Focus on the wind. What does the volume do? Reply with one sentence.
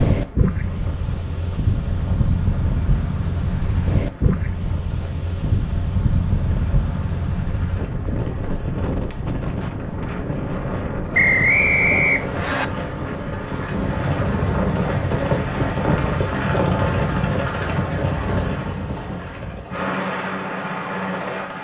The loudness of the wind goes down.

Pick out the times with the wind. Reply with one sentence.
You can hear the wind from 0.0 to 16.1 s.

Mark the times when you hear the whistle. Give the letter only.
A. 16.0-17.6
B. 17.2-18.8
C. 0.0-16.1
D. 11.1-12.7
D.